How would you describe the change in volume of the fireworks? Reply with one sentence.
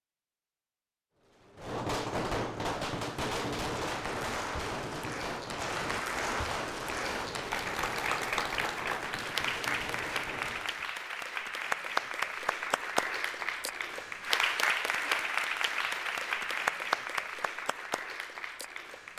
The volume of the fireworks goes down.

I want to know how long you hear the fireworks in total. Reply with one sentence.
You can hear the fireworks for 10 seconds altogether.